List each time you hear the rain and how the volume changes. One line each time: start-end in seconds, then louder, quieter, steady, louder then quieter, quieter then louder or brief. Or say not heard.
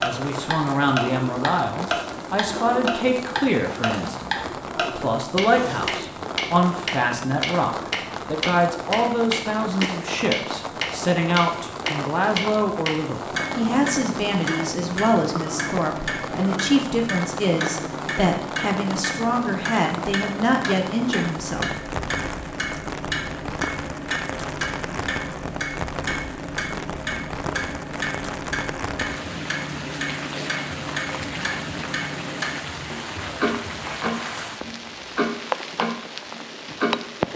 0.0-37.3 steady.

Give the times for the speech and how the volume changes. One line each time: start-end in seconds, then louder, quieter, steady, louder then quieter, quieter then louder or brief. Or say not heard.
0.0-21.7 steady.